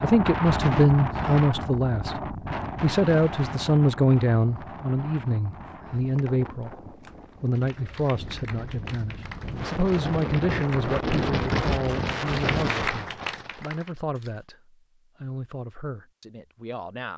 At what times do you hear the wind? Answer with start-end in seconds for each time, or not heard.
0.0-13.6.